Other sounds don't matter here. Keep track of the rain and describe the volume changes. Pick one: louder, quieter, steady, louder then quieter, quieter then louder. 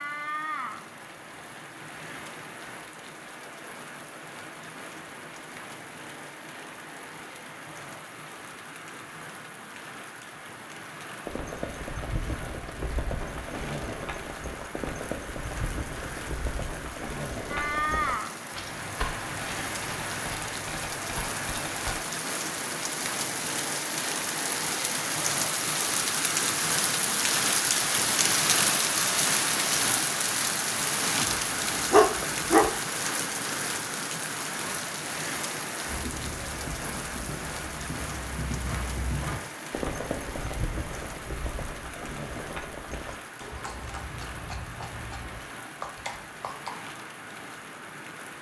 louder then quieter.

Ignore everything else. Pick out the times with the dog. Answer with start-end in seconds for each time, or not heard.
31.2-32.8.